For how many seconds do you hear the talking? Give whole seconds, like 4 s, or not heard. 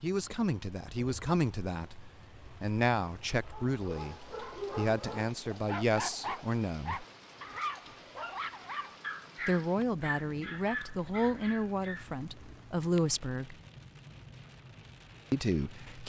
12 s.